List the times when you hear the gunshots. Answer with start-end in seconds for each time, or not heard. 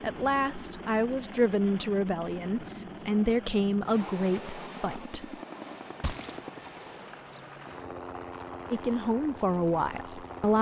6.0-6.4.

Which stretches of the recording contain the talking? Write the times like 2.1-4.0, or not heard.
0.0-5.3, 8.7-10.5.